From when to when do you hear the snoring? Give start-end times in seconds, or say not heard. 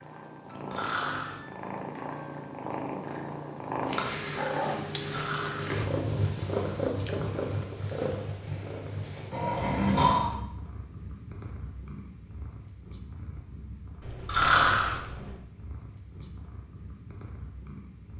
0.7-1.4, 5.0-5.8, 9.3-10.3, 14.2-15.0.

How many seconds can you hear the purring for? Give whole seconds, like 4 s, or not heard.
18 s.